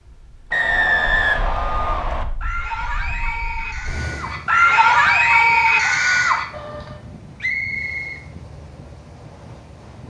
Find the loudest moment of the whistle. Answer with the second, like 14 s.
1 s.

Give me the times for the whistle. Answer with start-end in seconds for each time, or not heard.
0.5-2.2, 7.4-8.2.